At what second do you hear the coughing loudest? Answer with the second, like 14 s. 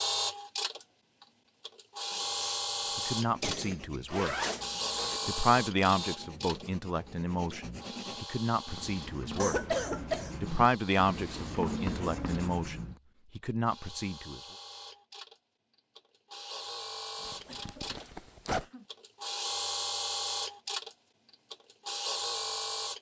10 s.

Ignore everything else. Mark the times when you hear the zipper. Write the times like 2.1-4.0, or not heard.
4.0-5.2, 17.2-18.6.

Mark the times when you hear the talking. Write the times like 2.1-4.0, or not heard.
3.0-4.3, 5.2-9.6, 10.4-14.4.